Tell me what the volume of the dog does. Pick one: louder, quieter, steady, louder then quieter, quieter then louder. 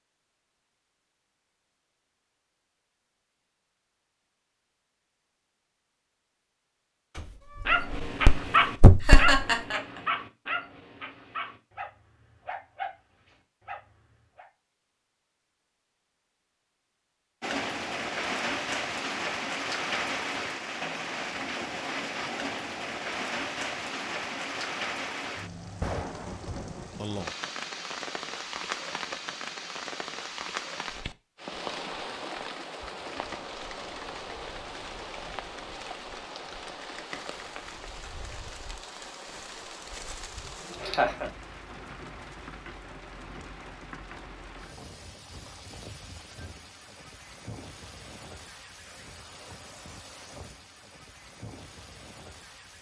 quieter.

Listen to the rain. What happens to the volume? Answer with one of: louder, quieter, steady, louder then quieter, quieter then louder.
quieter.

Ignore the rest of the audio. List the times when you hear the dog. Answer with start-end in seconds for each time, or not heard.
7.7-14.4.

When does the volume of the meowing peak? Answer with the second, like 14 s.
9 s.